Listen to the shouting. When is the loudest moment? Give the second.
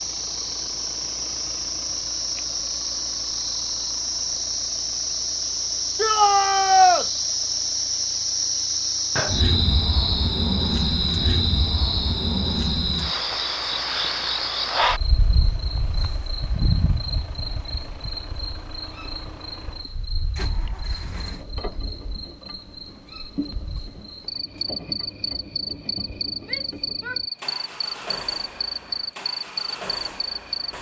7 s.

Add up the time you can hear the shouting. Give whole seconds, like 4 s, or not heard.
2 s.